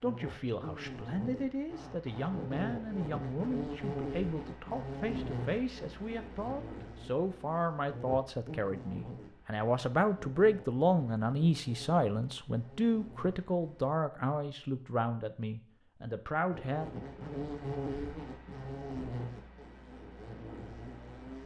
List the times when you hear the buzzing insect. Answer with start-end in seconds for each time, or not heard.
0.0-13.8, 16.5-21.4.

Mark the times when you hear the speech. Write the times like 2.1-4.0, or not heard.
0.0-17.1.